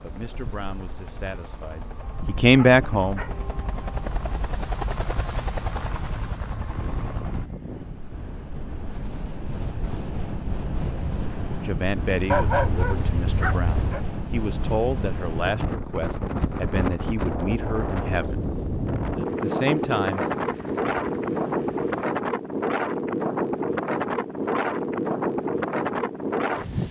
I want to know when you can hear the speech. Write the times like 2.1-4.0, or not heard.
0.0-3.2, 11.6-18.4, 19.3-20.2.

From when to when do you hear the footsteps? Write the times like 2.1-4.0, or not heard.
not heard.